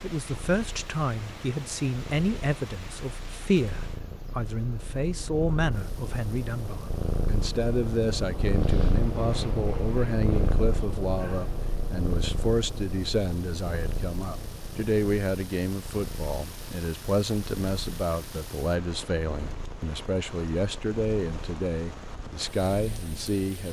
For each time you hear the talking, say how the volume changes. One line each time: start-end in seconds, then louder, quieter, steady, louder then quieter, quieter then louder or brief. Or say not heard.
0.0-23.6 steady.